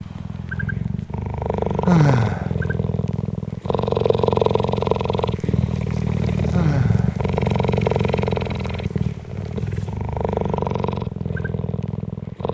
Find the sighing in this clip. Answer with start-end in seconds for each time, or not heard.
1.9-2.5, 6.5-7.2.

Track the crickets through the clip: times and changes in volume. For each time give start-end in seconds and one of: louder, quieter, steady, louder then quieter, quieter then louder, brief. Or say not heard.
not heard.